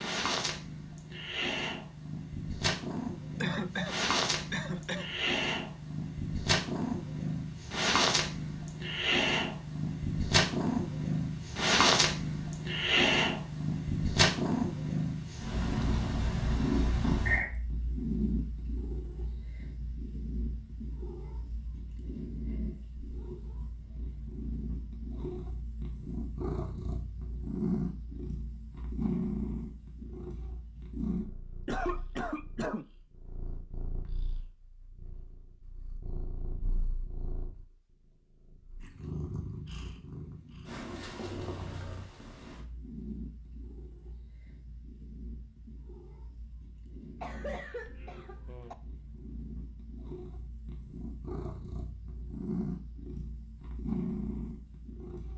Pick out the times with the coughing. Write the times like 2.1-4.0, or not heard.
3.4-5.1, 31.6-32.9, 47.2-48.8.